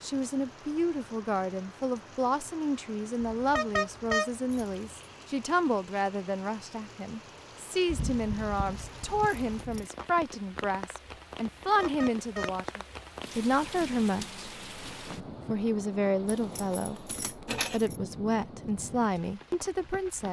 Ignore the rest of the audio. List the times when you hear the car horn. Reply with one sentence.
The car horn can be heard from 3.2 to 4.3 s and from 11.6 to 12.6 s.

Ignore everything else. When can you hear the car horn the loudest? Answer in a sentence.
The loudest moment of the car horn is at 4 seconds.